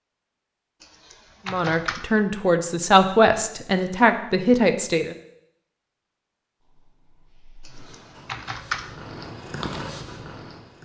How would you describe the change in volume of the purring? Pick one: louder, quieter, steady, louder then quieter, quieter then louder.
louder.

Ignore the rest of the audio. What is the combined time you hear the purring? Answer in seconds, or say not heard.
4 s.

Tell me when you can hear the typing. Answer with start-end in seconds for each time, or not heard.
0.8-2.1, 7.7-8.9.